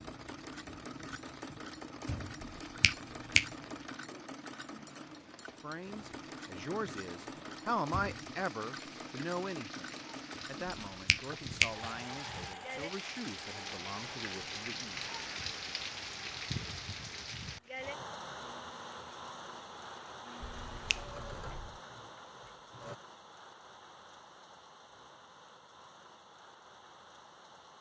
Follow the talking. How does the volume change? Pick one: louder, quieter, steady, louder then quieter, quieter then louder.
quieter.